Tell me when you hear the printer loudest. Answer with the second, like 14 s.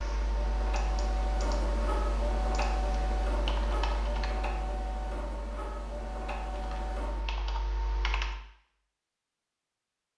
2 s.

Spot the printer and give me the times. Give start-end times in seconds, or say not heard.
0.0-7.3.